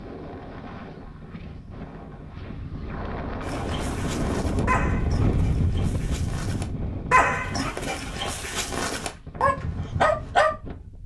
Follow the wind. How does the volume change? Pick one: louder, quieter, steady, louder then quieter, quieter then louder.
louder then quieter.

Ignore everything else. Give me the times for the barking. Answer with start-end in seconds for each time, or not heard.
3.4-10.5.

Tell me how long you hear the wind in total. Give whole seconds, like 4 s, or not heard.
11 s.